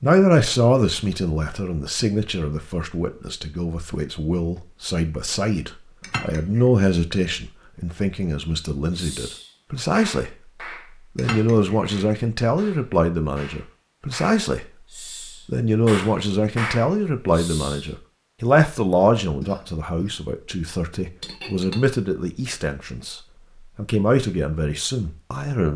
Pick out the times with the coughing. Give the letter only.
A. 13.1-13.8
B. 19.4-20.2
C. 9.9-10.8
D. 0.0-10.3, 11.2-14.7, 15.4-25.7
B.